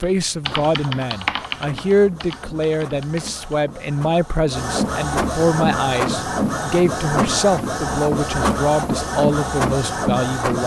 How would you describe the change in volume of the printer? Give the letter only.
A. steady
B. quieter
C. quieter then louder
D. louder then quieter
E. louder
E.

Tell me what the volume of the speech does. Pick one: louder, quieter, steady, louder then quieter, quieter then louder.
steady.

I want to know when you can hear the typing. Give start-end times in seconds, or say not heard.
0.0-3.5.